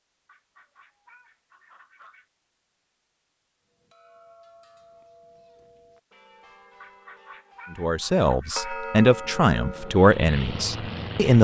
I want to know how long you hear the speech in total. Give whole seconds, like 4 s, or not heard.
4 s.